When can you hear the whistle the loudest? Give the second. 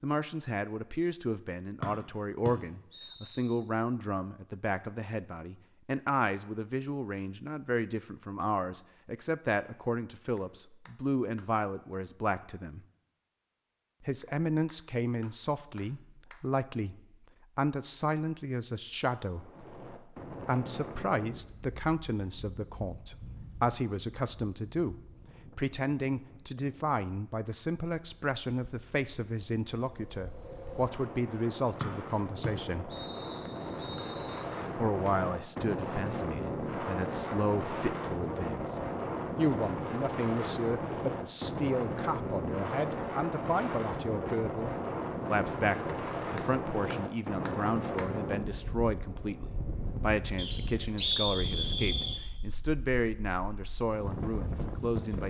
51 s.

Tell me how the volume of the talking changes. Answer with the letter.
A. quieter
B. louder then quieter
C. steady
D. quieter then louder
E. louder
C.